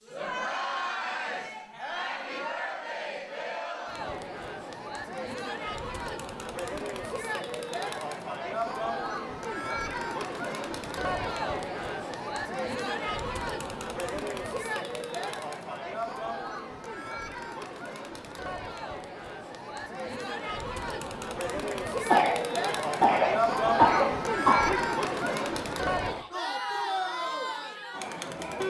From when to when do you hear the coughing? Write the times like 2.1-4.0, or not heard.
22.1-24.8.